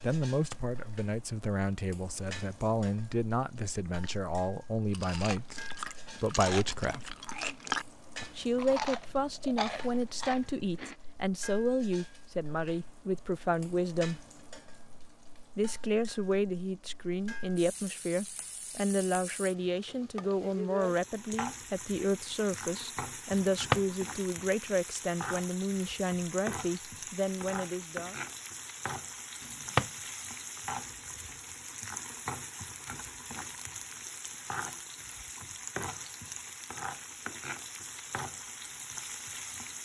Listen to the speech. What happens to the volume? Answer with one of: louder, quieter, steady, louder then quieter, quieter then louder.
steady.